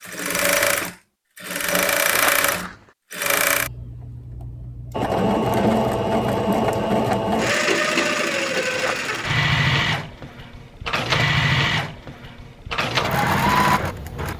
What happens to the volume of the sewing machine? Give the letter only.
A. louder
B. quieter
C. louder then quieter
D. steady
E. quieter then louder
D.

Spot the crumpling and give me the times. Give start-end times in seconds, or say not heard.
2.1-2.8, 8.8-9.3.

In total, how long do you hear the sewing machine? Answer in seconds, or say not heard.
14 s.